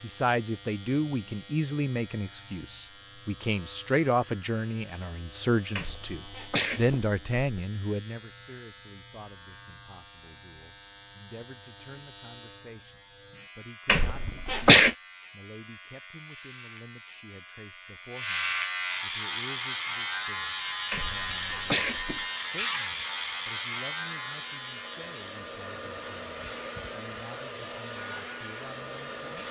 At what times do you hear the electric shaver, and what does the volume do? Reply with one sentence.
The electric shaver can be heard from 0.0 to 29.4 s, getting louder then quieter.